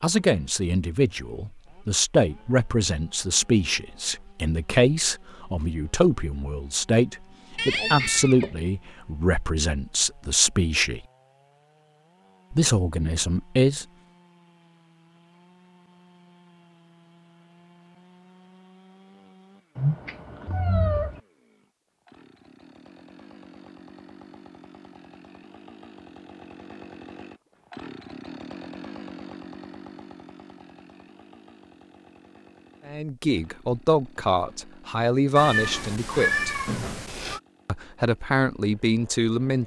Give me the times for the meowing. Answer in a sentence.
The meowing can be heard from 7.5 to 8.6 s, from 19.8 to 21.2 s and from 35.4 to 37.4 s.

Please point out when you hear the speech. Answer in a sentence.
You can hear the speech from 0.0 to 11.1 s, from 12.5 to 13.8 s, from 32.9 to 36.5 s and from 37.6 to 39.6 s.